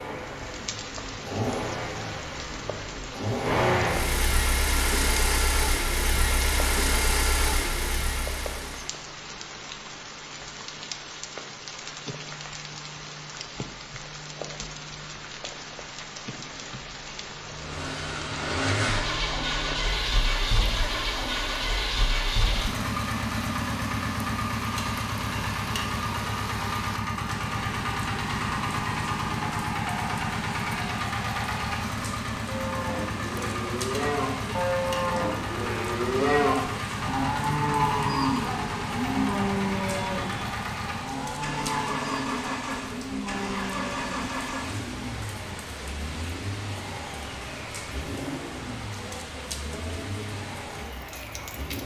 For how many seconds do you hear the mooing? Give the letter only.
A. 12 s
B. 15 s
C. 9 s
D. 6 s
A.